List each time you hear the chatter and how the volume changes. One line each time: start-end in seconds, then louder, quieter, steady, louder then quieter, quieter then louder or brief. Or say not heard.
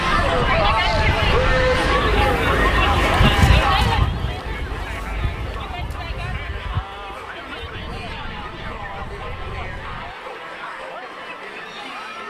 0.0-12.2 quieter.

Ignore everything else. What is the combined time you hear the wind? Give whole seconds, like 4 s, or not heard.
10 s.